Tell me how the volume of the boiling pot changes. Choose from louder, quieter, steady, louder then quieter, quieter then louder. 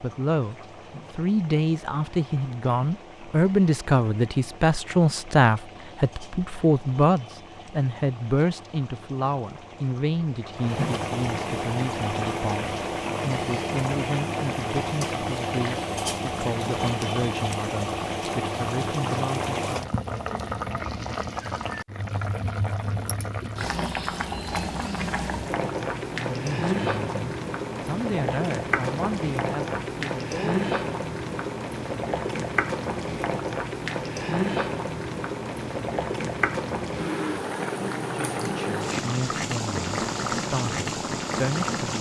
louder.